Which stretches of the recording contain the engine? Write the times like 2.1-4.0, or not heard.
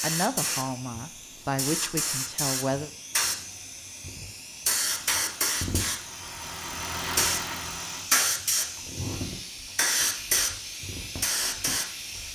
4.8-8.1.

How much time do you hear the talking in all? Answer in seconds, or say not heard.
3 s.